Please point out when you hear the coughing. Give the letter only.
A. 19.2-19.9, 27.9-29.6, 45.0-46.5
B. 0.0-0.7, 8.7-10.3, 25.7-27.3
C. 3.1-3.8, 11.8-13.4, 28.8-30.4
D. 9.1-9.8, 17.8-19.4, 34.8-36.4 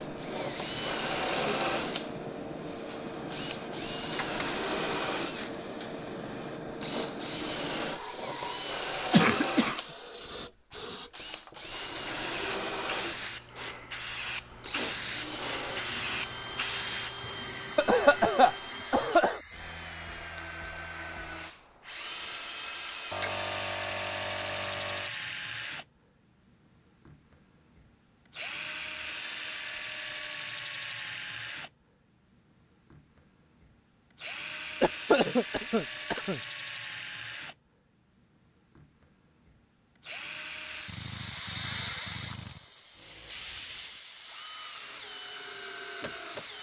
D.